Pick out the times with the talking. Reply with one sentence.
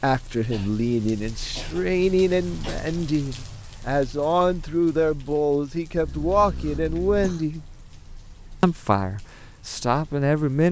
The talking can be heard from 0.0 to 7.6 s and from 8.6 to 10.6 s.